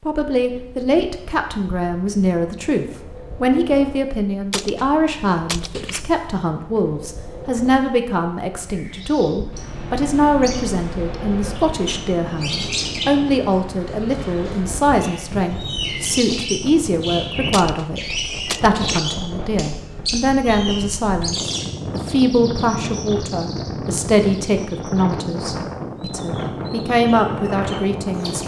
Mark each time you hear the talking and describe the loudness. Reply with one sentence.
The talking can be heard from 0.0 to 28.4 s, at a steady volume.